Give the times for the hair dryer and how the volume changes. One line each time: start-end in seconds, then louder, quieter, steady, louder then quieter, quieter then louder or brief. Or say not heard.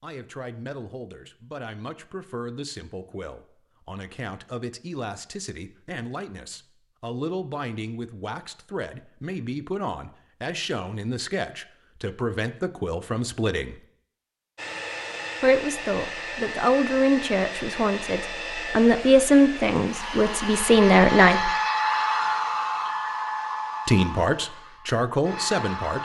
14.6-25.9 louder then quieter.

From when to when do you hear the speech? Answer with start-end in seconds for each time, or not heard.
0.0-13.8, 15.4-21.5, 23.9-25.9.